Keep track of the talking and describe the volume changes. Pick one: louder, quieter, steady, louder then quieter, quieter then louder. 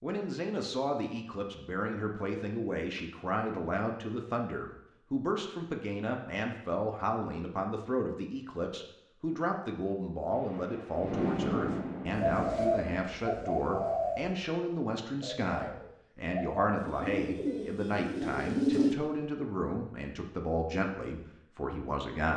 steady.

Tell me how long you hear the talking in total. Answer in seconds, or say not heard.
22 s.